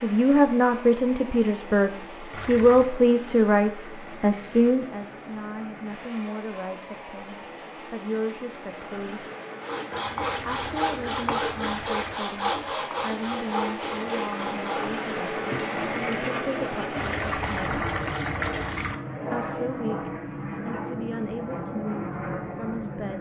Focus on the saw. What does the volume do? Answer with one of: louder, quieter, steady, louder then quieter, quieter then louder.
quieter.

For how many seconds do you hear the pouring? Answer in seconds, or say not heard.
5 s.